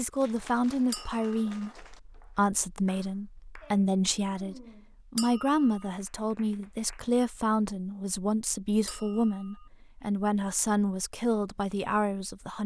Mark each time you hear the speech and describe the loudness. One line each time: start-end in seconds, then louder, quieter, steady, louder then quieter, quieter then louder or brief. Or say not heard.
0.0-12.6 steady.